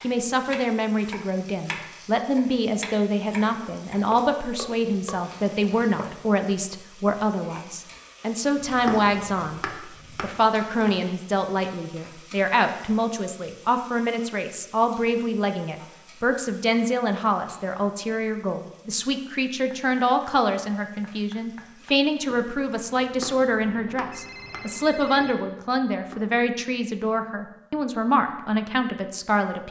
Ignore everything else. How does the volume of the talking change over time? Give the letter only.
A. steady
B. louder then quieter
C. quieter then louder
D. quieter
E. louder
A.